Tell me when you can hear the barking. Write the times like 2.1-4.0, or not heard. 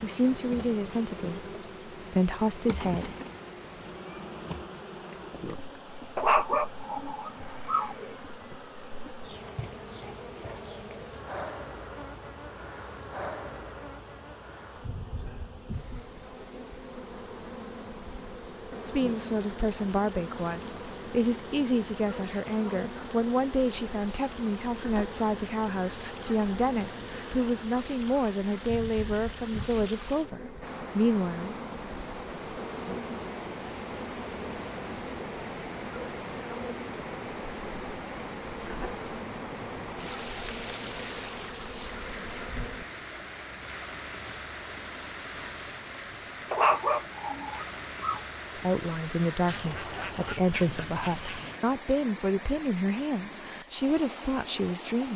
6.2-8.2, 46.5-48.2.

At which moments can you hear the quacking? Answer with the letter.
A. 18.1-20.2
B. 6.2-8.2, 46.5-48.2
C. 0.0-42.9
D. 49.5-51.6
D.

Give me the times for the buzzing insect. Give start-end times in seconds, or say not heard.
0.0-42.9.